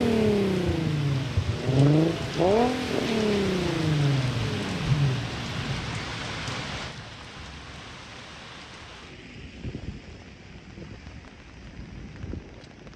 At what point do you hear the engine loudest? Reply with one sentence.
The loudest moment of the engine is at 2 seconds.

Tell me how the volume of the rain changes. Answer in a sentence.
The loudness of the rain goes down.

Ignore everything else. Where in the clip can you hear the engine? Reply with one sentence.
You can hear the engine from 0.0 to 5.8 s.